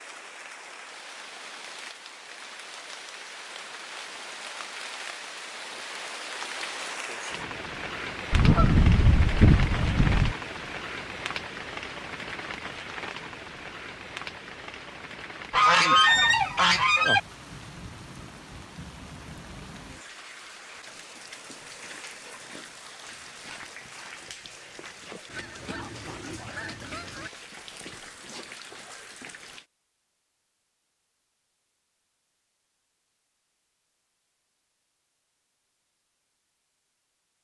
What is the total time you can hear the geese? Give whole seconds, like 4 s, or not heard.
6 s.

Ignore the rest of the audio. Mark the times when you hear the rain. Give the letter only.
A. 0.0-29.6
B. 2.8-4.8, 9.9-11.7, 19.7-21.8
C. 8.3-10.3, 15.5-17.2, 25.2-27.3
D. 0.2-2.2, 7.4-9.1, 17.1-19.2
A.